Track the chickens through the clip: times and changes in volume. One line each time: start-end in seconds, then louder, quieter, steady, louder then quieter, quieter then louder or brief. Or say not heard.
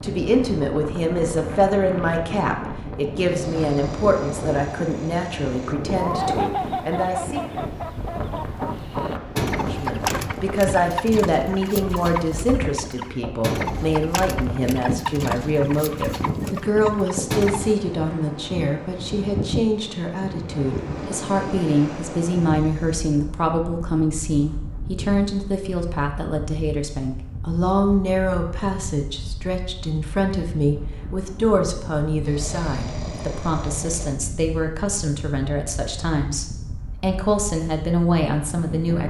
6.0-17.8 steady.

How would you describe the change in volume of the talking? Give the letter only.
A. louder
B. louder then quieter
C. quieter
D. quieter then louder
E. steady
E.